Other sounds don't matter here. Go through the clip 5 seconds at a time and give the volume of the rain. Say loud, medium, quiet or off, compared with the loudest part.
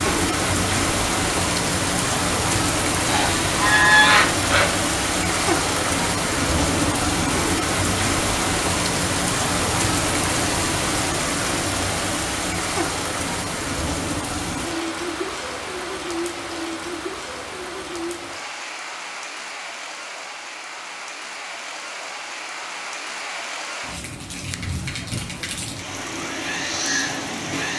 loud, loud, loud, medium, medium, medium.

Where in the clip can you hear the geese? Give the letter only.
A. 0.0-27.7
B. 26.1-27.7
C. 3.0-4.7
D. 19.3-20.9
C.